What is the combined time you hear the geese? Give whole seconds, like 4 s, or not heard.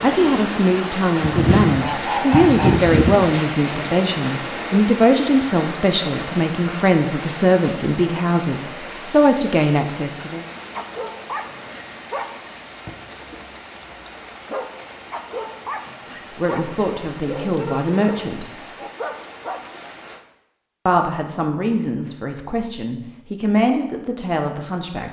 2 s.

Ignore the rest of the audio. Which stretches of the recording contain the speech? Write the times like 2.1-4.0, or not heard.
0.0-10.4, 16.3-18.6, 20.9-25.0.